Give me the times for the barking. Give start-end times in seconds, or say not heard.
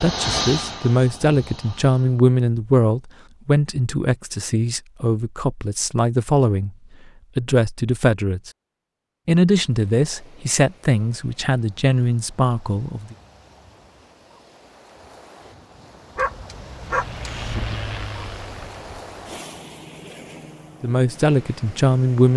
16.1-17.6.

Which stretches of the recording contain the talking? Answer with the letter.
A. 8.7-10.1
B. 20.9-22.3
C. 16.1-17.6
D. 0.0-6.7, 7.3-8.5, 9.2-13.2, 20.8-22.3
D.